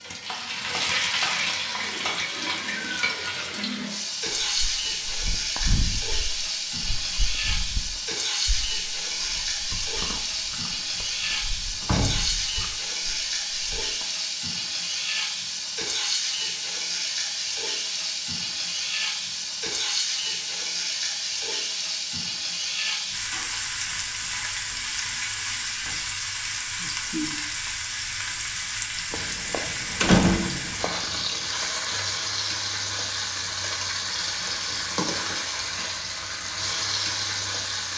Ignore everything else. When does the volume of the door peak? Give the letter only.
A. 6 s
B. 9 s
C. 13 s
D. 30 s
D.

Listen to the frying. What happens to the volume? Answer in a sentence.
The loudness of the frying stays about the same.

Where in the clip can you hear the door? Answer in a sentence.
The door can be heard from 11.8 to 12.3 s and from 29.1 to 31.2 s.